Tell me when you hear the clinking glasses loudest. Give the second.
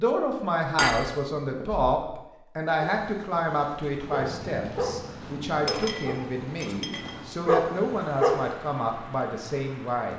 1 s.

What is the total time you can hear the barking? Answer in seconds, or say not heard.
6 s.